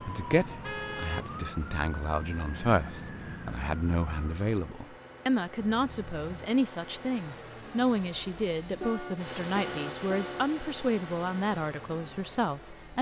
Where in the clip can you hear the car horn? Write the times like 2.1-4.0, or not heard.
0.6-1.2, 5.5-6.5, 8.8-10.6.